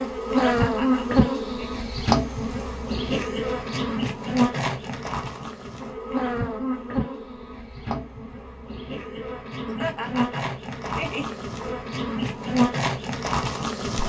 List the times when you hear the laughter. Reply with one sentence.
You can hear the laughter from 0.3 to 1.7 s and from 9.7 to 11.3 s.